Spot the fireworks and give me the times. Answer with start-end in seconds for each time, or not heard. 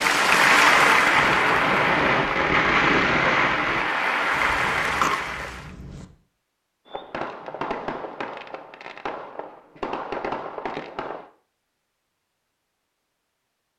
0.0-3.9, 6.8-11.3.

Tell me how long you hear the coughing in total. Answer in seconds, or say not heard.
2 s.